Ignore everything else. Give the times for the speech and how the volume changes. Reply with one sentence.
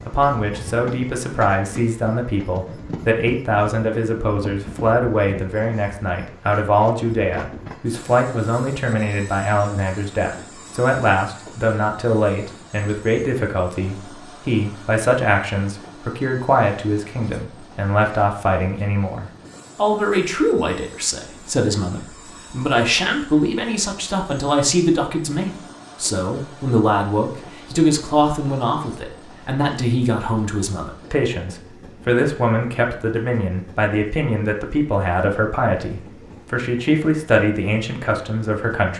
The speech can be heard from 0.1 to 38.9 s, at a steady volume.